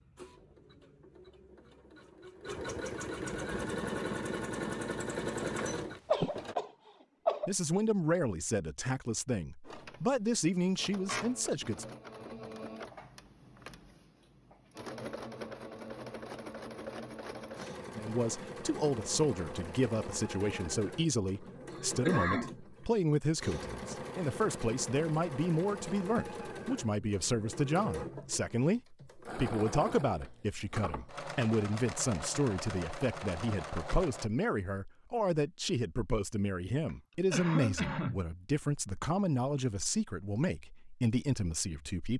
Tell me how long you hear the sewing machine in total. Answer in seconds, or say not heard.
31 s.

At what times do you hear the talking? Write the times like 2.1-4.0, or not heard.
7.5-11.8, 17.9-42.1.